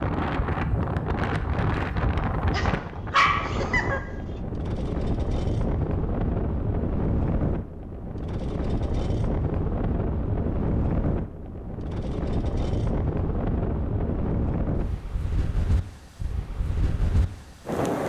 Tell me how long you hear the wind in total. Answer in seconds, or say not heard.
18 s.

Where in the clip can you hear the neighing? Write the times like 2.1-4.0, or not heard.
not heard.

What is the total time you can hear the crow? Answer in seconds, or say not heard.
not heard.